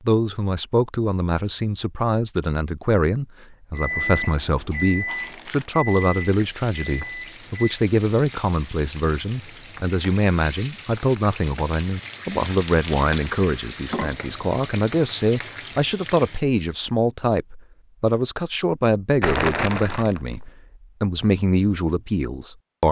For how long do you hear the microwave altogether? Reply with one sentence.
The microwave can be heard for 4 seconds in total.